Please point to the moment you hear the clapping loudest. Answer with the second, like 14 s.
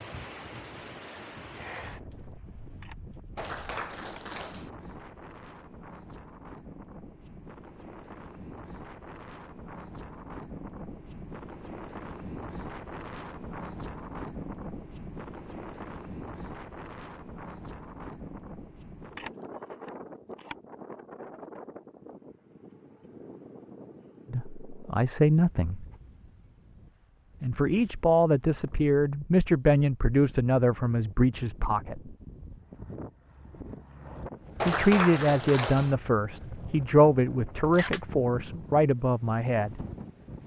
35 s.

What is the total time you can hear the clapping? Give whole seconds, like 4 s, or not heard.
3 s.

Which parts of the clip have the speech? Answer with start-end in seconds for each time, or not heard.
24.3-25.9, 27.4-32.1, 34.6-39.8.